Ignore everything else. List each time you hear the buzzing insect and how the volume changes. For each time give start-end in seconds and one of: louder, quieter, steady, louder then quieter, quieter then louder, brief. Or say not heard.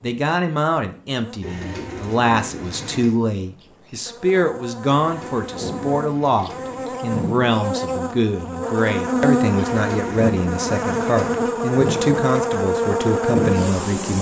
0.0-14.1 louder.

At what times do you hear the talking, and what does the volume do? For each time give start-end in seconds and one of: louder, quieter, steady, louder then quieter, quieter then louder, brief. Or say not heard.
0.0-14.1 steady.